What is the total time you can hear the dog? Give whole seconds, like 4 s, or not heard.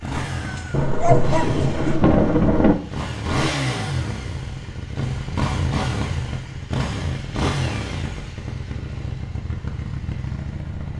2 s.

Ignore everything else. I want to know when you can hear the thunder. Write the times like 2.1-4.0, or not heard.
0.7-2.8.